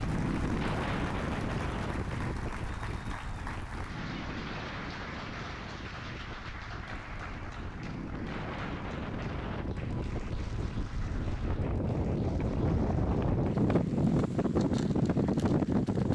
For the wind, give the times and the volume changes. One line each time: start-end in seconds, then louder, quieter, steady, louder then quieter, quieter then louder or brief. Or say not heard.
0.0-16.1 quieter then louder.